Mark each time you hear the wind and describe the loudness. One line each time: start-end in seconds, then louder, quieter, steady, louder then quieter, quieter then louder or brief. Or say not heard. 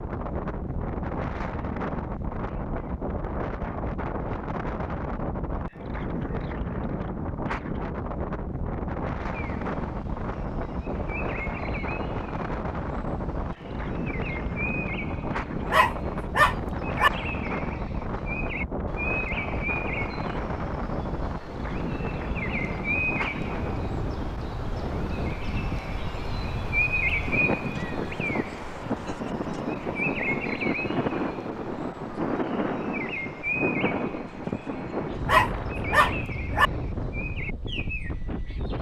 0.0-38.7 steady.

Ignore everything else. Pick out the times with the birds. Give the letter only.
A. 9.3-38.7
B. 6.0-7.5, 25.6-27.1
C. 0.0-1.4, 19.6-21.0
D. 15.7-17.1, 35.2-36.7
A.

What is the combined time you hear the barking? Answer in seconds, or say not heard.
3 s.